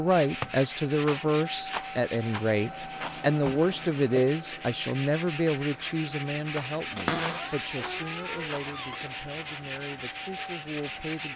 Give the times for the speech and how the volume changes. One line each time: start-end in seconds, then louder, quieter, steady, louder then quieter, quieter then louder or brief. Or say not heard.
0.0-11.3 quieter.